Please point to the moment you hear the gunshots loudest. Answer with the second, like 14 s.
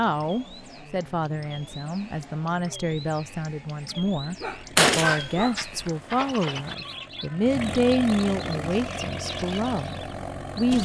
5 s.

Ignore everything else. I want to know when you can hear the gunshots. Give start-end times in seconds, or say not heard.
4.8-6.8.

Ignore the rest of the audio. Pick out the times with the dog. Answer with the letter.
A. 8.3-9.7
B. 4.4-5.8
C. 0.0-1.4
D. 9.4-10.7
B.